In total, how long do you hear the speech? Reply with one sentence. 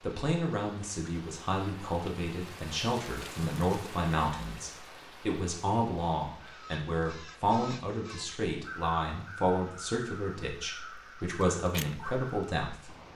You can hear the speech for 13 seconds altogether.